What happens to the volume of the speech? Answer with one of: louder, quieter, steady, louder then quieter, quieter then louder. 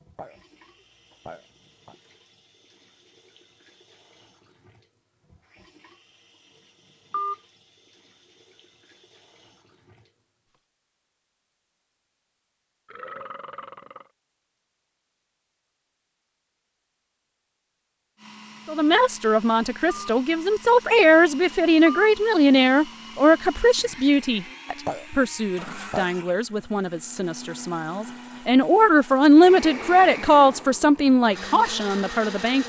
quieter then louder.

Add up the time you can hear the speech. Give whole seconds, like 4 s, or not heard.
14 s.